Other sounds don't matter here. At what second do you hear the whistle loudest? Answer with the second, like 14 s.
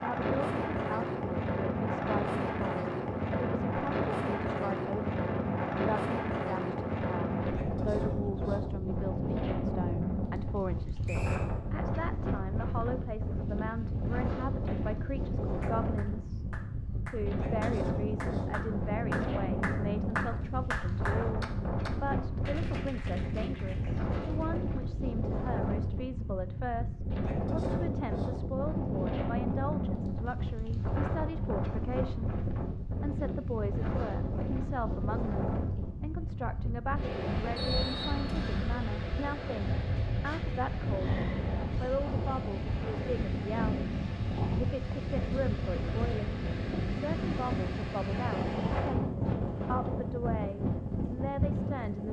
38 s.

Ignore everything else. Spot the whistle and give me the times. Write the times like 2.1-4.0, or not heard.
11.1-11.5, 37.5-38.6.